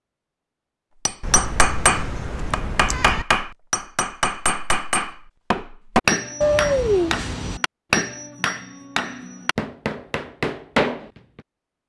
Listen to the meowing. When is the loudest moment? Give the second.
7 s.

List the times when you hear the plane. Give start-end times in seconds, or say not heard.
not heard.